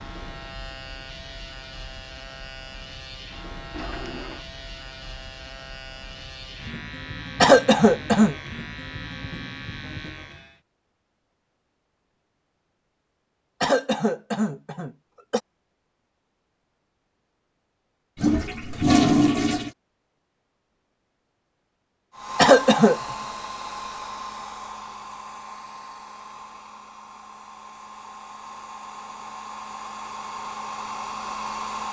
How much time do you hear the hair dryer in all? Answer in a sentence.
You can hear the hair dryer for 10 seconds altogether.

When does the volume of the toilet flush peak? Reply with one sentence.
The volume of the toilet flush peaks at 19 seconds.